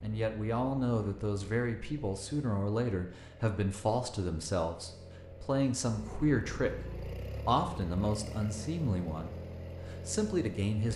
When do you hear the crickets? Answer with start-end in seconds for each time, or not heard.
not heard.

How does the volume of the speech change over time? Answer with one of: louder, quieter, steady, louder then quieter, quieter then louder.
steady.